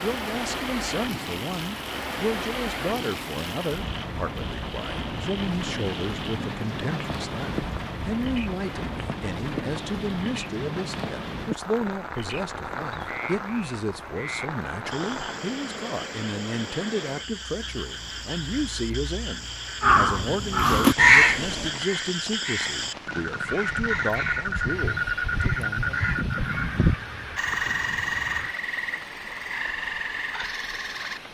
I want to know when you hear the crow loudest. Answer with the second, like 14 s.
21 s.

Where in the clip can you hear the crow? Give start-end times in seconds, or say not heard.
19.8-28.6.